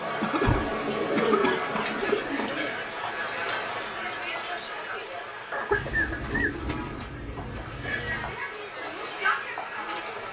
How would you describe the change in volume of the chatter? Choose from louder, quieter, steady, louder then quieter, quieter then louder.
quieter then louder.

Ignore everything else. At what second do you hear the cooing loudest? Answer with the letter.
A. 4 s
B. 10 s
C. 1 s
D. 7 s
C.